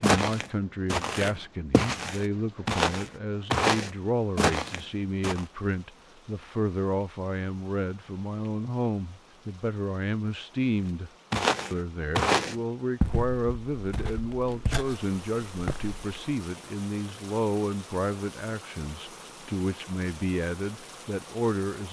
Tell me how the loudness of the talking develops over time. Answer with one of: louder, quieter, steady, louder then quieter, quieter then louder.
steady.